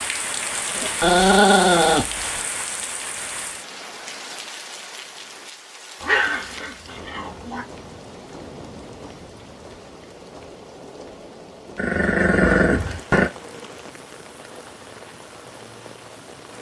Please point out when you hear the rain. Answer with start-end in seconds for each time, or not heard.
0.0-16.5.